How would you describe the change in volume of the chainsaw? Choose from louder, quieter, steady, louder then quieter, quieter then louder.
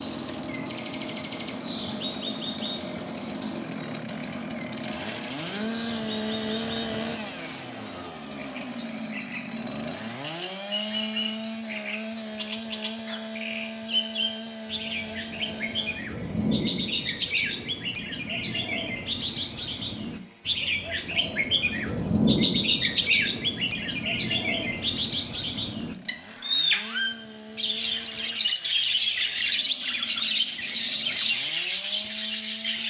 quieter.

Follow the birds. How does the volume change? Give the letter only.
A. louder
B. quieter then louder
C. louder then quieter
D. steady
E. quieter
A.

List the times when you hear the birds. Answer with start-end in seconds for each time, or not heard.
0.0-32.8.